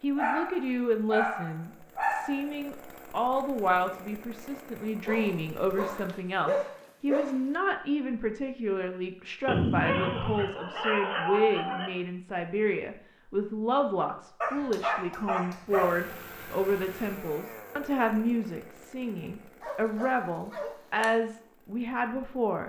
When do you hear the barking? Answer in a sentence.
The barking can be heard from 0.1 to 2.5 s, from 5.0 to 7.4 s, from 9.4 to 12.0 s, from 14.4 to 16.1 s and from 19.6 to 21.1 s.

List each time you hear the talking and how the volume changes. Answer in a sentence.
You can hear the talking from 0.0 to 22.6 s, at a steady volume.